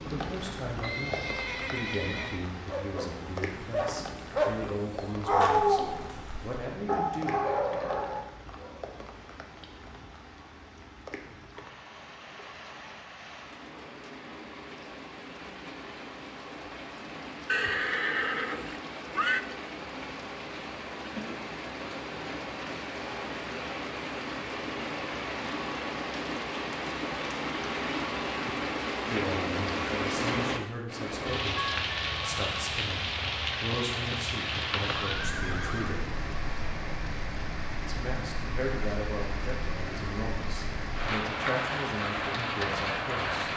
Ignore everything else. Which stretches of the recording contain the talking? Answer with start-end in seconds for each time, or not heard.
0.0-7.5, 29.1-36.2, 37.8-43.5.